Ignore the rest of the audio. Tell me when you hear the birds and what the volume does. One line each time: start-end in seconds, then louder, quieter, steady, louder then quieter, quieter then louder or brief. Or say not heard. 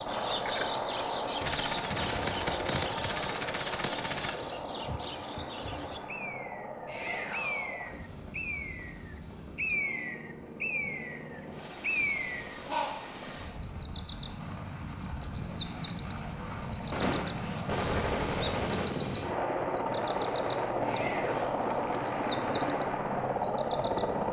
0.0-24.1 louder.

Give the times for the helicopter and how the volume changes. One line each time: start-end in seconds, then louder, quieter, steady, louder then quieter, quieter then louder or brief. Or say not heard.
0.0-24.2 quieter then louder.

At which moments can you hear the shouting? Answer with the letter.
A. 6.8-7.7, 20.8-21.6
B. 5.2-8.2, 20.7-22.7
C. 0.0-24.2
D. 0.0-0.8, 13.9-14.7
A.